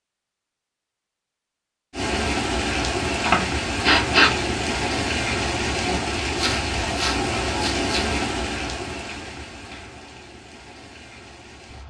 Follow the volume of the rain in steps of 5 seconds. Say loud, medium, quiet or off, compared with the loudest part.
loud, loud, quiet.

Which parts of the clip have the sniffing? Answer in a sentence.
The sniffing can be heard from 3.2 to 4.3 s and from 6.3 to 8.1 s.